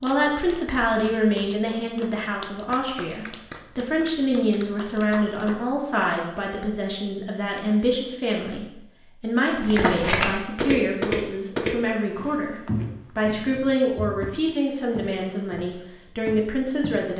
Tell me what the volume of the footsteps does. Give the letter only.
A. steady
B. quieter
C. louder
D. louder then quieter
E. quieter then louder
B.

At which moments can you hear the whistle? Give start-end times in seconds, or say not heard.
not heard.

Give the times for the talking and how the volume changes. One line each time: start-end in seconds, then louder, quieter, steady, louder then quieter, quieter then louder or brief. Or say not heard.
0.0-17.1 steady.